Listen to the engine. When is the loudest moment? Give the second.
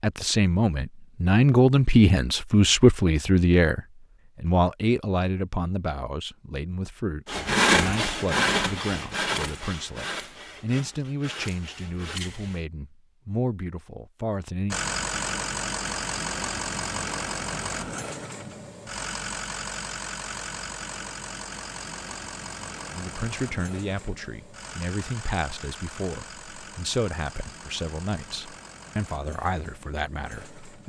15 s.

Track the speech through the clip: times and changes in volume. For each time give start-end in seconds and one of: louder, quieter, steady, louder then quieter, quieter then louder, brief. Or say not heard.
0.0-14.8 quieter
22.9-30.8 steady.